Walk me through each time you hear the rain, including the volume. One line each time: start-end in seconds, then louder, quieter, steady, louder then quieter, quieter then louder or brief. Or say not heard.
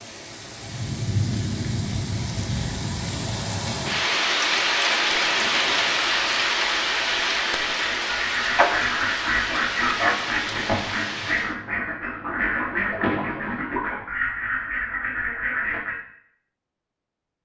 0.0-11.6 louder then quieter.